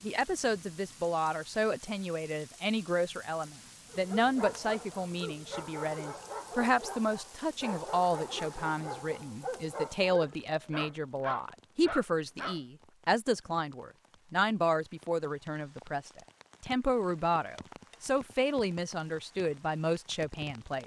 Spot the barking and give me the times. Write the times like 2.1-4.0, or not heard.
3.9-12.6.